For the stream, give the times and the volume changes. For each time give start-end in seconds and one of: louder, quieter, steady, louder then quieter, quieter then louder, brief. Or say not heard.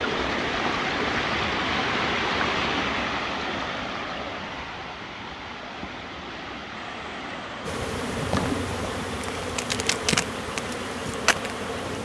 0.0-12.0 quieter.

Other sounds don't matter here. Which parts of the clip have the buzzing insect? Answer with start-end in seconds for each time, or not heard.
7.7-12.0.